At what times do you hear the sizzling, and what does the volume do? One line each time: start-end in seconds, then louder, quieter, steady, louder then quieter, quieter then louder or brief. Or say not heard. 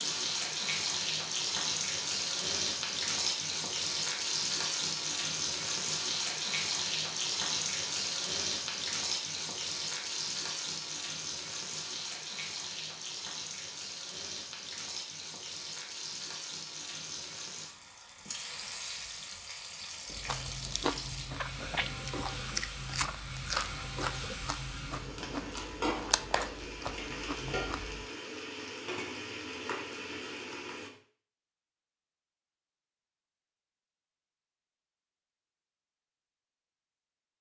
0.0-30.9 quieter.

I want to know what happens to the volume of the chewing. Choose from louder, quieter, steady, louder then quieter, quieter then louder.
steady.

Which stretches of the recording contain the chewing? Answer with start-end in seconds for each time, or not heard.
20.1-28.1.